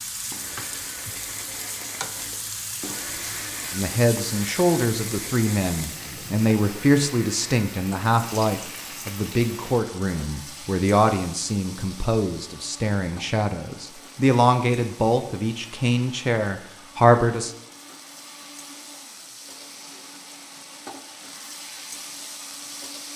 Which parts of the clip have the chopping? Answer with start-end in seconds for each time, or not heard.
not heard.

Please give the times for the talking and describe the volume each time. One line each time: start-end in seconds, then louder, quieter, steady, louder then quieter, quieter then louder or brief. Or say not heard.
3.7-17.5 steady.